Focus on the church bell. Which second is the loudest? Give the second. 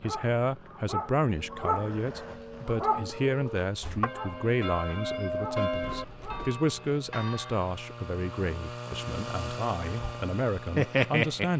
6 s.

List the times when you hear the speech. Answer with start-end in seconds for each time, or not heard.
0.0-11.5.